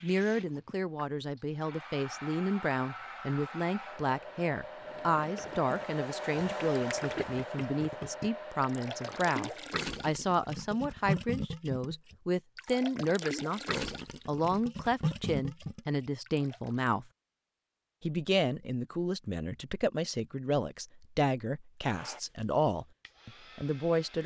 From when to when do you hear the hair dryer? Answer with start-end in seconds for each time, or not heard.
0.0-9.7, 21.8-24.2.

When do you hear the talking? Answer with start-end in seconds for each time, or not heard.
0.0-17.1, 18.0-24.2.